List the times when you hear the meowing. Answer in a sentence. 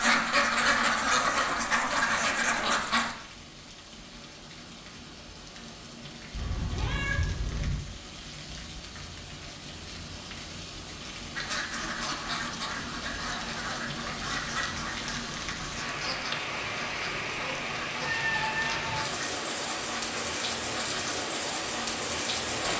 The meowing can be heard from 6.3 to 7.8 s and from 18.0 to 19.1 s.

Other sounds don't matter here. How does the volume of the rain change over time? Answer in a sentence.
The volume of the rain goes up.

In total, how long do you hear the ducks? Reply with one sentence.
You can hear the ducks for 13 seconds altogether.